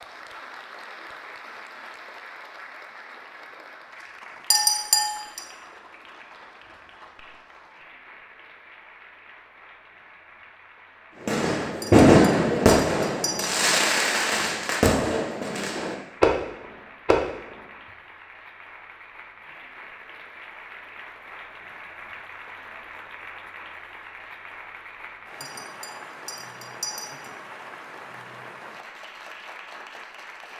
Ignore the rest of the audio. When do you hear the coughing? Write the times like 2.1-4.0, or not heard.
not heard.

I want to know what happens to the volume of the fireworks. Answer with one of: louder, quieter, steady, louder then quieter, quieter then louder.
quieter then louder.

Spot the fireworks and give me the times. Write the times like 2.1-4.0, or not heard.
11.2-17.6.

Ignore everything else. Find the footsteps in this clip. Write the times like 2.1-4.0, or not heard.
not heard.